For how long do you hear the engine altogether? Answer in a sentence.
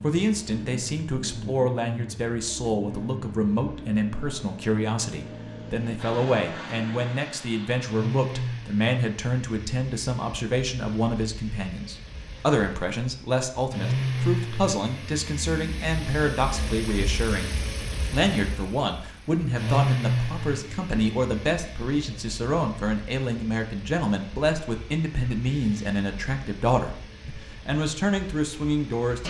You can hear the engine for 29 seconds altogether.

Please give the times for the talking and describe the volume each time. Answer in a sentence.
You can hear the talking from 0.0 to 29.2 s, at a steady volume.